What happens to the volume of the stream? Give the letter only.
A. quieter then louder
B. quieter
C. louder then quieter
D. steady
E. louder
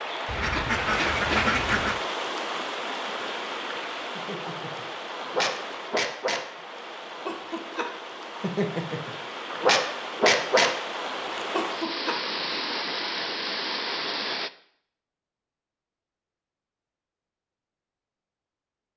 A.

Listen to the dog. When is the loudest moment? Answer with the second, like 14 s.
10 s.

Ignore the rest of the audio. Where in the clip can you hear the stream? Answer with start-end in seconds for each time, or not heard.
0.0-14.5.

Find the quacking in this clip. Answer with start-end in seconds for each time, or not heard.
0.2-2.0.